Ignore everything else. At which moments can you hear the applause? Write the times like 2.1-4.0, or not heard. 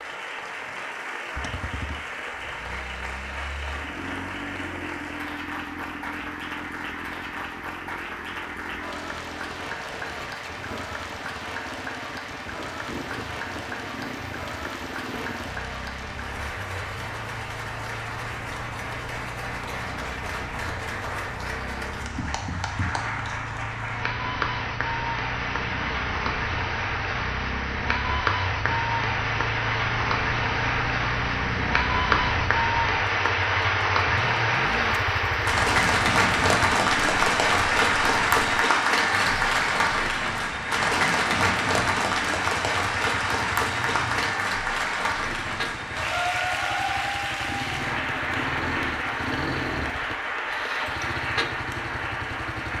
0.0-52.7.